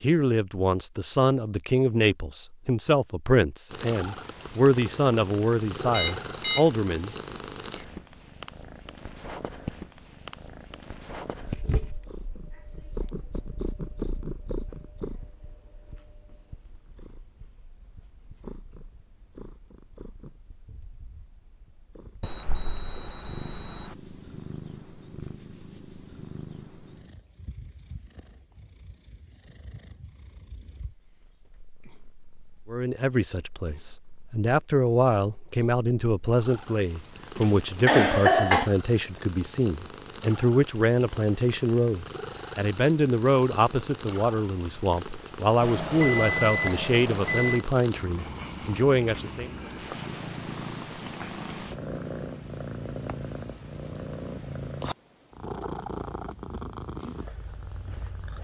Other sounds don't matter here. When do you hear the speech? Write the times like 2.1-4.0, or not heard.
0.0-7.1, 32.7-49.5.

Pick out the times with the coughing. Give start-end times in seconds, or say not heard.
37.4-38.7.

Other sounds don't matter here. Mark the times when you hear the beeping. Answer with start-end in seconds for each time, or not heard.
5.9-6.7, 22.2-23.9, 45.6-47.6.